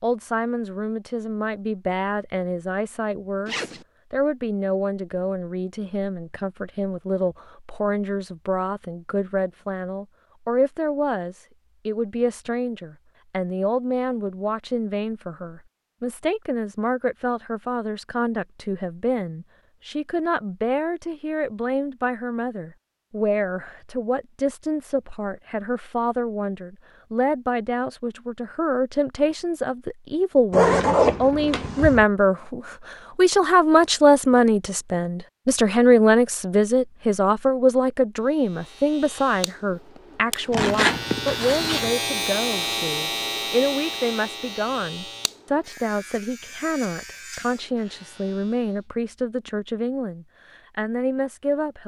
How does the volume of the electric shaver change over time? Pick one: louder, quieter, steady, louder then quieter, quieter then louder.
louder then quieter.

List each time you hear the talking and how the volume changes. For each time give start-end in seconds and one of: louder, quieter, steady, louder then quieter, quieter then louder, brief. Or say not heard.
0.0-51.8 louder then quieter.